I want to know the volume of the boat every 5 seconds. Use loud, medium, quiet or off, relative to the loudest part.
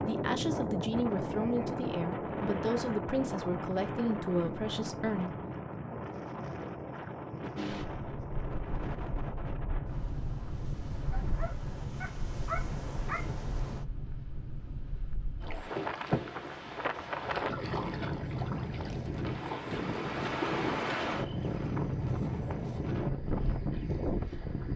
off, loud, loud, loud, loud.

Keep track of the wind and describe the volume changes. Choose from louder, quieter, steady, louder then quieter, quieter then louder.
quieter then louder.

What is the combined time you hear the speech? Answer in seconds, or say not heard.
5 s.